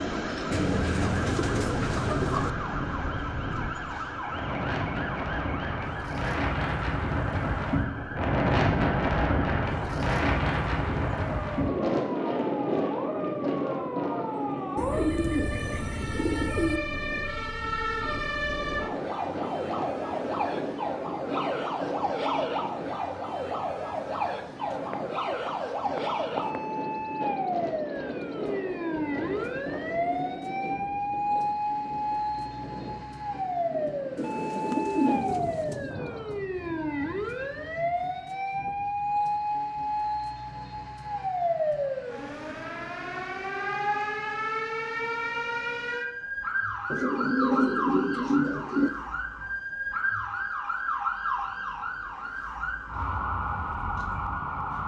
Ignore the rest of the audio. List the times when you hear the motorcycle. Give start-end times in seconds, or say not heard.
not heard.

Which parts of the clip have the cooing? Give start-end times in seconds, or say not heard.
0.5-2.5, 14.8-16.8, 24.7-26.6, 34.1-35.9, 46.9-48.9.